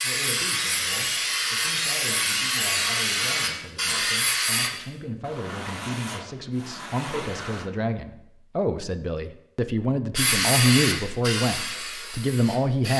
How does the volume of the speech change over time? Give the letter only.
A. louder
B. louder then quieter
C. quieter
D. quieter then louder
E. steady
A.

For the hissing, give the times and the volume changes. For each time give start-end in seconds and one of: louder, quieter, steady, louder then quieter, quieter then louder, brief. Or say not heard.
0.0-4.7 steady
10.2-12.9 brief.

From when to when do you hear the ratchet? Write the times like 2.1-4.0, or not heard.
not heard.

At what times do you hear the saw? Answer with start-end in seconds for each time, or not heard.
5.2-7.7.